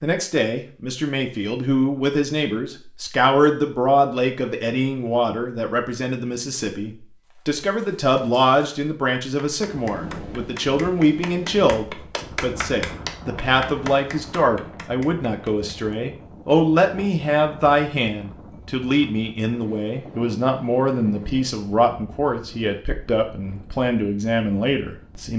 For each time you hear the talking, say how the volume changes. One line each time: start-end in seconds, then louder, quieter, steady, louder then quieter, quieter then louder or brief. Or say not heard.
0.0-25.3 steady.